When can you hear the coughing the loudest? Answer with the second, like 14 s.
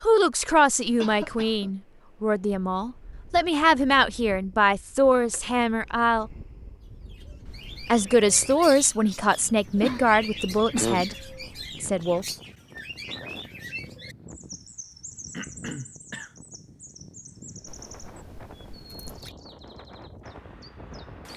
11 s.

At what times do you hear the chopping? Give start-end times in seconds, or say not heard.
not heard.